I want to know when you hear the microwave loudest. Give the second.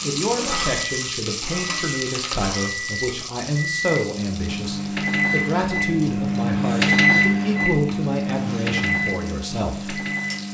7 s.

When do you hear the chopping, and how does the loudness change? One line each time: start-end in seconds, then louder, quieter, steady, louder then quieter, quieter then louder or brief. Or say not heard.
not heard.